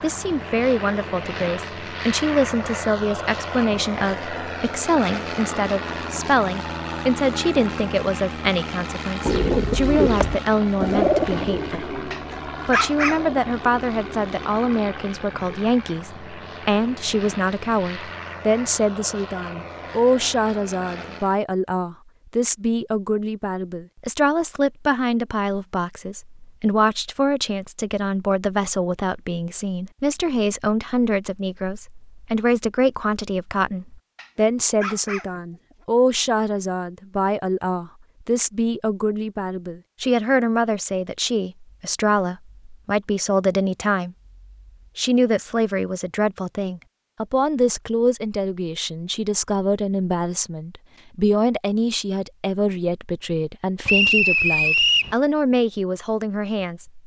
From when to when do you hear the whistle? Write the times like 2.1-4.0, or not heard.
53.9-55.1.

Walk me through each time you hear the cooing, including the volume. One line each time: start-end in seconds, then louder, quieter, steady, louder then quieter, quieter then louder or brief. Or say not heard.
9.2-15.6 quieter.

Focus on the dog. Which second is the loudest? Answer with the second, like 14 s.
13 s.